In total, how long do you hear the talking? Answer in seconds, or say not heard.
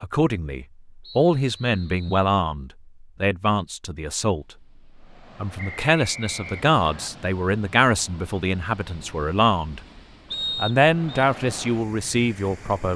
11 s.